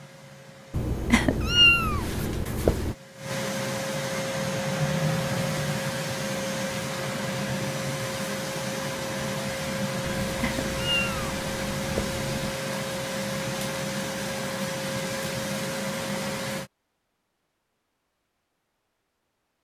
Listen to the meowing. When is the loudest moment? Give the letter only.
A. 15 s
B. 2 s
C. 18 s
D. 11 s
B.